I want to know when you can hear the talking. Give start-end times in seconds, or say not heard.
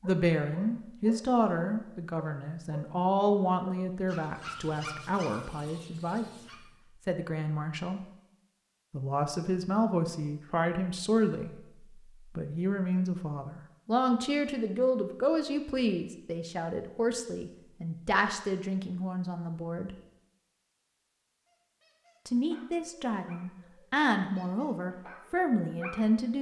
0.0-6.3, 7.0-8.0, 8.9-19.9, 22.2-26.3.